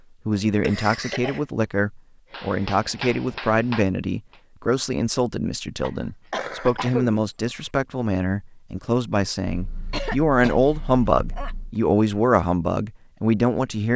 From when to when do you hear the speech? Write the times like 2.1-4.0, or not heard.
0.2-13.9.